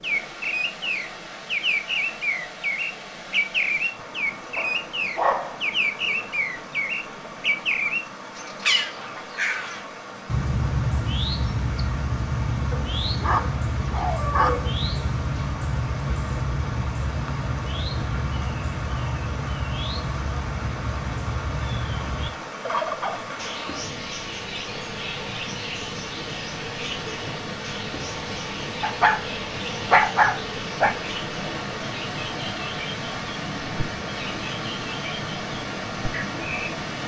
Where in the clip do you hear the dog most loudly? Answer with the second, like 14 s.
30 s.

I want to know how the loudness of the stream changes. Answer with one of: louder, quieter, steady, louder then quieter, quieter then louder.
louder.